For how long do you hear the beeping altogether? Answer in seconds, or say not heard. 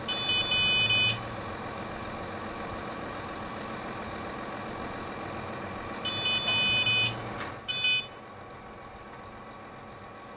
3 s.